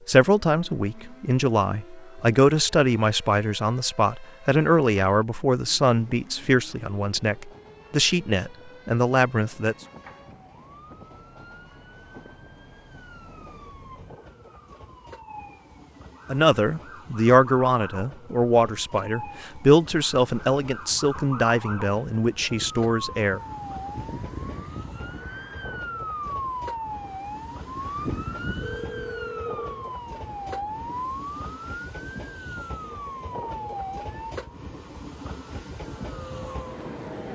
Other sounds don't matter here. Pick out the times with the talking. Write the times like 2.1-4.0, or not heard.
0.1-9.8, 16.3-23.4.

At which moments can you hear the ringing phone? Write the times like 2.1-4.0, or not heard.
28.6-29.9.